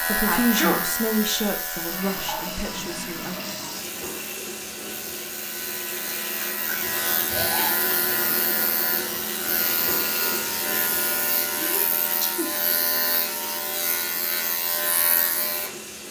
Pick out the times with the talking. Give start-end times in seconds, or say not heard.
0.0-3.4.